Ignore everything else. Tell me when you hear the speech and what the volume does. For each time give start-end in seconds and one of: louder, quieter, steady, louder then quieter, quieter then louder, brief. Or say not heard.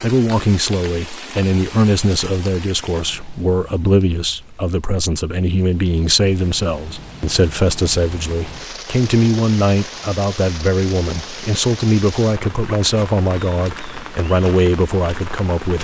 0.0-15.7 steady.